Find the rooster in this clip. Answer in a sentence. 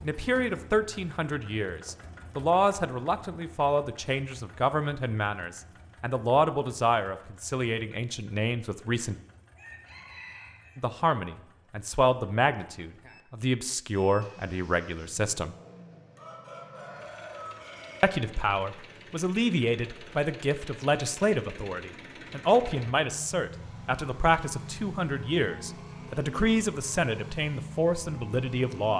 The rooster can be heard from 9.6 to 10.8 s and from 16.1 to 18.2 s.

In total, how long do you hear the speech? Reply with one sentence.
You can hear the speech for 25 seconds altogether.